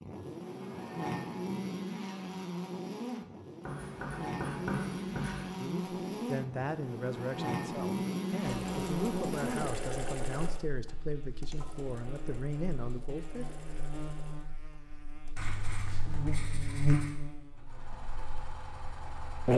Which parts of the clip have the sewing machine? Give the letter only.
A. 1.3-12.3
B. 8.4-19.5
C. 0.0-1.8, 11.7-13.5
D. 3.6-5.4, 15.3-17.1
B.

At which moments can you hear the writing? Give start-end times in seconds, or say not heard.
3.6-5.4, 15.3-17.1.